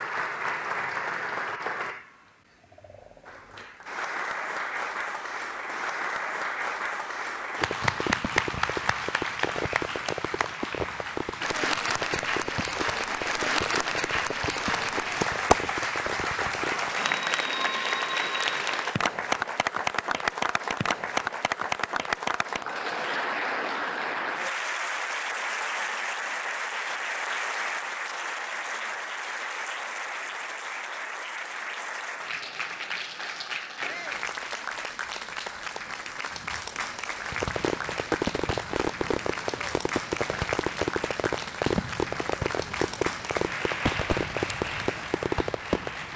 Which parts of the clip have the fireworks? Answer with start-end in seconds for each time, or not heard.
7.5-16.9, 37.3-46.1.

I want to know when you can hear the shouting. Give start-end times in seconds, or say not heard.
33.8-34.2.